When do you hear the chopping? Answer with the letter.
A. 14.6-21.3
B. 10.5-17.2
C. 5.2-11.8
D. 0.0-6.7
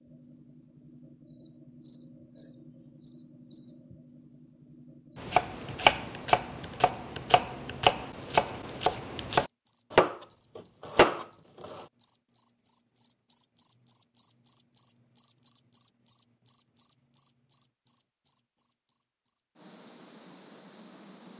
C.